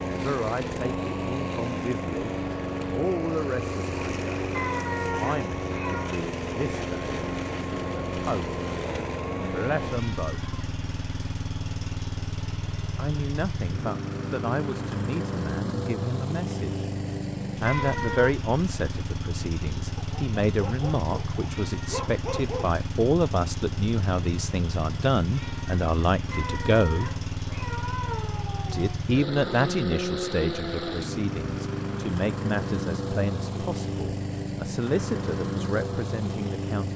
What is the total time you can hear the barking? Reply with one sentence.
The barking can be heard for 3 seconds in total.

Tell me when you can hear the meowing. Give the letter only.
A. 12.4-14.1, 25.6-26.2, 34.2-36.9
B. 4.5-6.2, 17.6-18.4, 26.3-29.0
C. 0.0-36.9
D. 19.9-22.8
B.